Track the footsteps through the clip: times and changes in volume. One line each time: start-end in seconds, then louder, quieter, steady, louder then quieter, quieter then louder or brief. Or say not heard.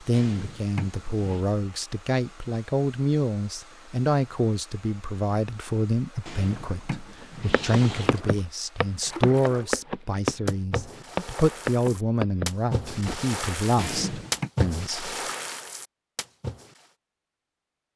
7.5-13.3 steady.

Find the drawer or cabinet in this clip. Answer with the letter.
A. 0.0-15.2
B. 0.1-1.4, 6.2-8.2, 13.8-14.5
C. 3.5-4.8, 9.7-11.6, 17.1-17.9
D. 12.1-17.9
B.